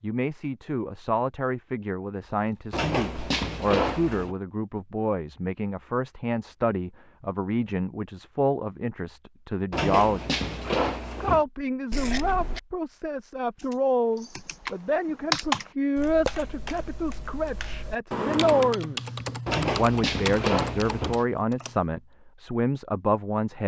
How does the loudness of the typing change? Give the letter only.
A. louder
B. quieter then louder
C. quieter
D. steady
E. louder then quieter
B.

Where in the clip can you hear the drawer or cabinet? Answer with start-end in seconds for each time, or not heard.
2.7-4.3, 9.7-11.4, 19.4-21.2.